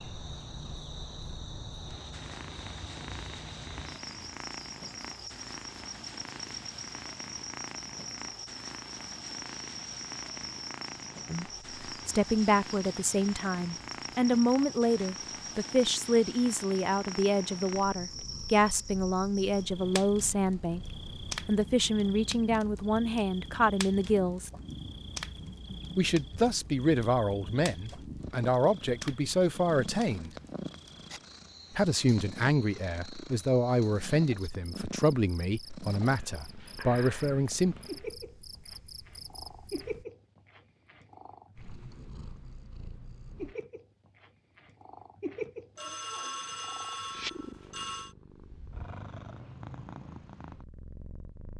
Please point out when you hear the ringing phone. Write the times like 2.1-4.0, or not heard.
45.8-48.1.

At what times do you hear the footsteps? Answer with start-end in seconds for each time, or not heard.
not heard.